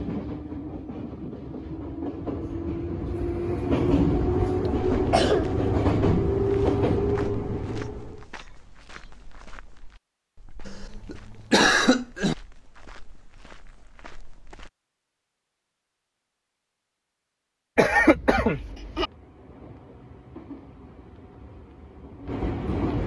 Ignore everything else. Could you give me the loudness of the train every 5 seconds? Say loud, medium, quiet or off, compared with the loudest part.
loud, loud, off, quiet, medium.